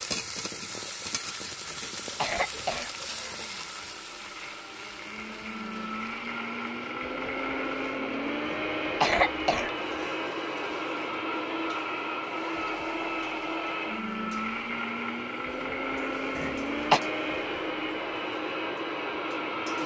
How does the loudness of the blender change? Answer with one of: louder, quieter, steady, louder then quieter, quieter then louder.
louder.